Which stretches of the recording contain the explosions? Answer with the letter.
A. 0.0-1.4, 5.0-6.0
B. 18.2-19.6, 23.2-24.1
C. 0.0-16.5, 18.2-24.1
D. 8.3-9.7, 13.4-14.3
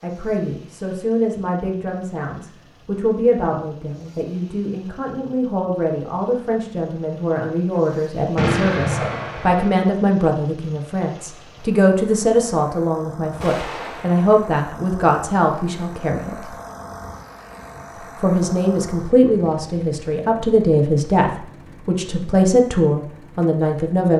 D.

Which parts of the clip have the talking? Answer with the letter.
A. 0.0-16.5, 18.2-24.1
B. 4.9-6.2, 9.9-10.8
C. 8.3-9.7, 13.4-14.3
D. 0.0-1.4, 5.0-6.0
A.